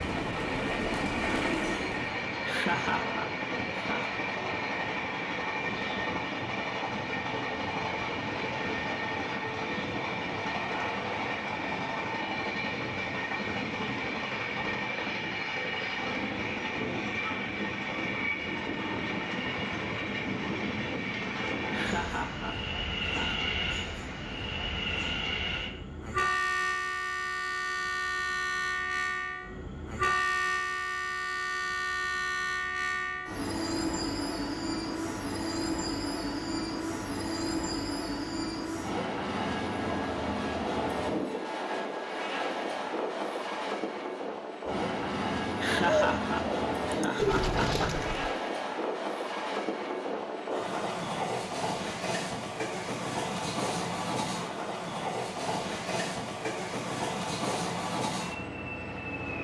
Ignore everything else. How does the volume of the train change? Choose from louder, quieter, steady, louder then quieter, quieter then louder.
steady.